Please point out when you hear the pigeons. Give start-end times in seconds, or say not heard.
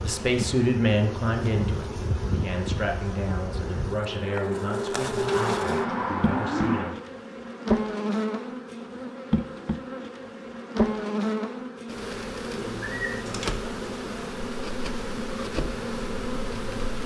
5.2-7.0, 12.6-13.9.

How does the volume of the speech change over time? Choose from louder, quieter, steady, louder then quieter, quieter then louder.
quieter.